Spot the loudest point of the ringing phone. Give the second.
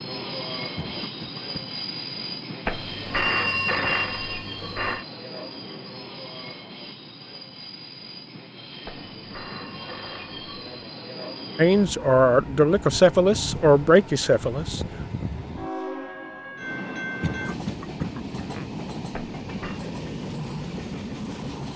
3 s.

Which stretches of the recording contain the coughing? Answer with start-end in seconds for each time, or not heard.
0.8-1.8, 17.2-18.7.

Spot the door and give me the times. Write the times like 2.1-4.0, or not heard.
not heard.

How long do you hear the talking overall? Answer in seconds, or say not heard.
3 s.